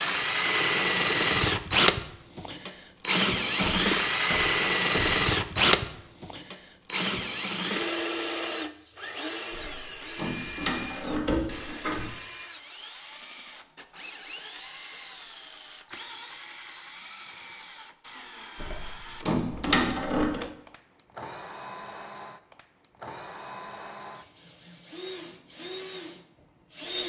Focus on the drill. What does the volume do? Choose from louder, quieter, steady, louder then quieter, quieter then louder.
quieter.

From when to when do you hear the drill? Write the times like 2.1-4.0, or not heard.
0.0-27.0.